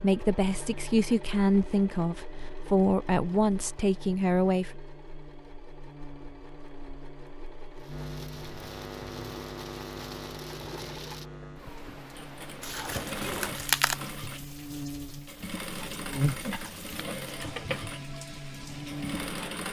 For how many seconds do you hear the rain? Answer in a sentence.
The rain can be heard for 12 seconds in total.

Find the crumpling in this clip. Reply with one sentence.
You can hear the crumpling from 12.6 to 14.0 s.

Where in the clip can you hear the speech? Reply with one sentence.
The speech can be heard from 0.0 to 4.7 s.